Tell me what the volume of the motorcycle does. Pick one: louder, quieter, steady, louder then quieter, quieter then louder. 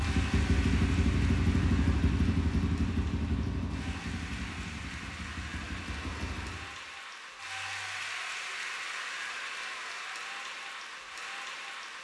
quieter.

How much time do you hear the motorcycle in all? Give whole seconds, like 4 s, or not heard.
7 s.